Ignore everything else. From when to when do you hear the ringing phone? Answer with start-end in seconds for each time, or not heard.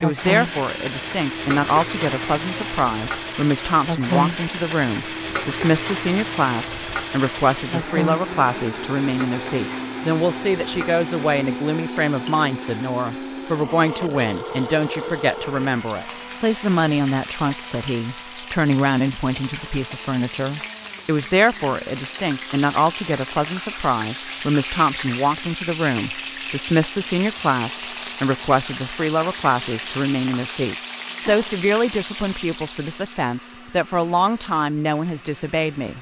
13.8-15.7.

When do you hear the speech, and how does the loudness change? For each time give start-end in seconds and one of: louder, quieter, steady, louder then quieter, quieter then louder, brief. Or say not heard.
0.0-35.9 steady.